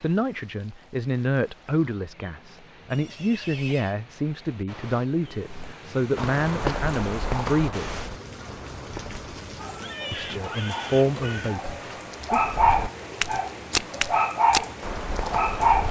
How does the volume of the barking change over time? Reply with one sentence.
The loudness of the barking goes up.